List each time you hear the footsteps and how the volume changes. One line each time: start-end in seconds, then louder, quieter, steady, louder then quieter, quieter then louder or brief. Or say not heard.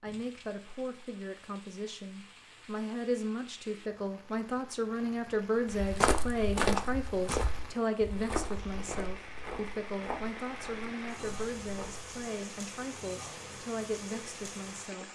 5.7-12.1 quieter.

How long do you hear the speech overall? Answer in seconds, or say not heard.
15 s.